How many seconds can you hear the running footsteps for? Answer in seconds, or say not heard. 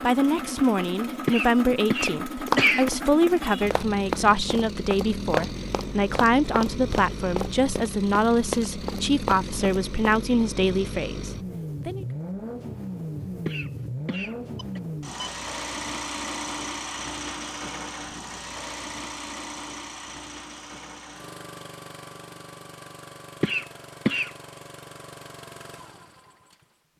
8 s.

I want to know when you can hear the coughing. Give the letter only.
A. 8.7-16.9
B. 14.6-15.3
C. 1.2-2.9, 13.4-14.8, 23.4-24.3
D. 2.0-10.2
C.